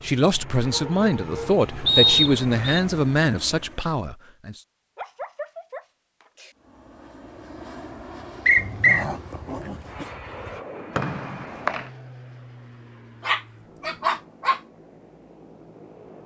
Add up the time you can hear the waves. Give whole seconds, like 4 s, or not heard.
not heard.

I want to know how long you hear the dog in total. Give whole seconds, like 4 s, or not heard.
7 s.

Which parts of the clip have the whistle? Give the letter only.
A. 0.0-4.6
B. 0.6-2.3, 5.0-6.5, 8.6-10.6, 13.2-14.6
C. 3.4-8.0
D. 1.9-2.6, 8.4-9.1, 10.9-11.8
D.